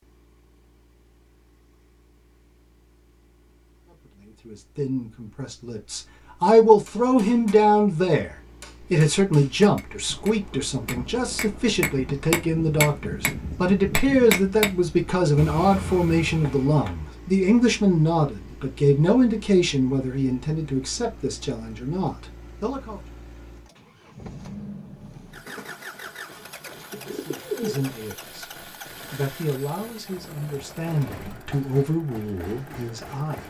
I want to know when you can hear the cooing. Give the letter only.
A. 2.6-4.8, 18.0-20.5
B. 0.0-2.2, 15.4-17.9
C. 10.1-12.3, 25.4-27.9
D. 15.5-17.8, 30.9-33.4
C.